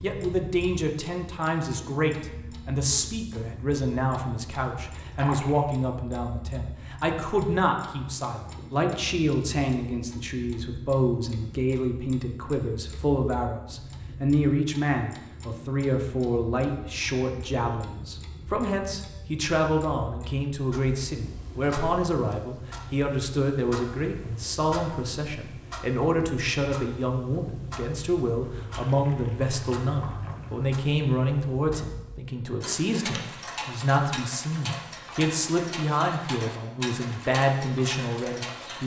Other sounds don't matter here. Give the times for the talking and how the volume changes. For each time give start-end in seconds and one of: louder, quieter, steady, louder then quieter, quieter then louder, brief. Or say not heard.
0.0-38.8 steady.